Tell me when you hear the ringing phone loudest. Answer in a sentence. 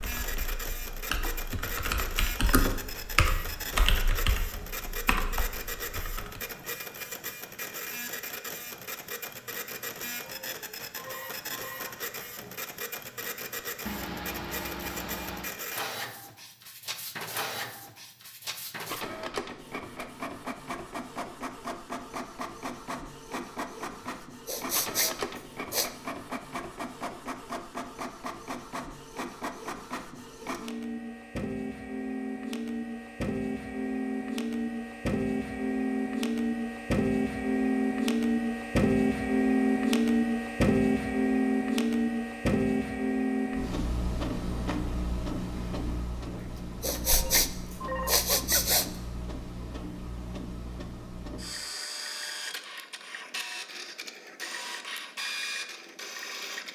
The loudest moment of the ringing phone is at 48 seconds.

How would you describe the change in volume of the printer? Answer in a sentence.
The loudness of the printer goes up, then down.